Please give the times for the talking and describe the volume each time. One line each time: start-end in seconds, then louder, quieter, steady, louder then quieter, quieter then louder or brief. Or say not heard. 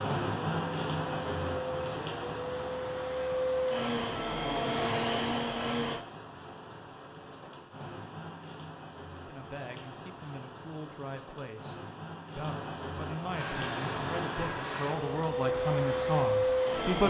9.2-17.0 louder.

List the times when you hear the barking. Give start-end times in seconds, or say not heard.
not heard.